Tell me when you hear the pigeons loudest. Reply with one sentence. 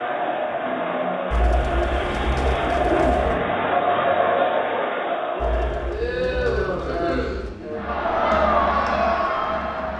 The loudest moment of the pigeons is at 3 seconds.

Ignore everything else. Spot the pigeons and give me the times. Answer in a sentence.
The pigeons can be heard from 1.3 to 3.4 s and from 5.3 to 7.5 s.